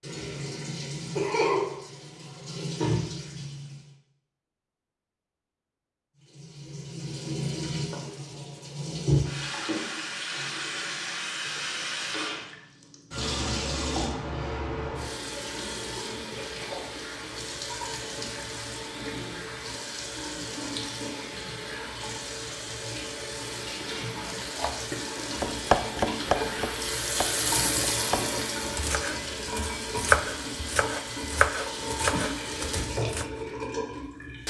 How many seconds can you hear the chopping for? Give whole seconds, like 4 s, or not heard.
9 s.